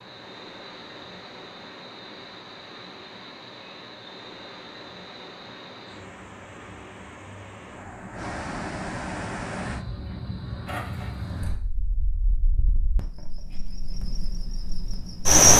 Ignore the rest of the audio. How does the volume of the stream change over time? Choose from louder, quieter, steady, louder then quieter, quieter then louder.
louder.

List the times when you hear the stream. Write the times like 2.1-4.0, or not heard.
0.0-9.8.